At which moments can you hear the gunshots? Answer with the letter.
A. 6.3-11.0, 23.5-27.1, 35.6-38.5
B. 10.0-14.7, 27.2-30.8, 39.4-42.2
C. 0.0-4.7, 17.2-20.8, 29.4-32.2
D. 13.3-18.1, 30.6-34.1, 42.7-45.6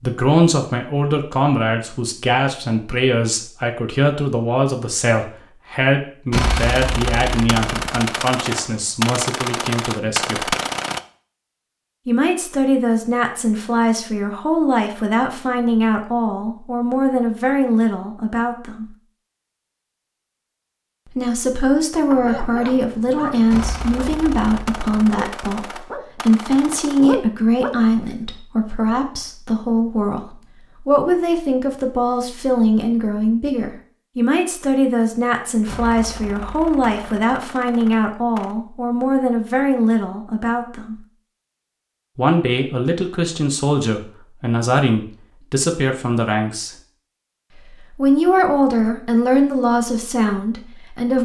A.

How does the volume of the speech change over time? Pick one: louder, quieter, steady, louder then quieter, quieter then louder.
steady.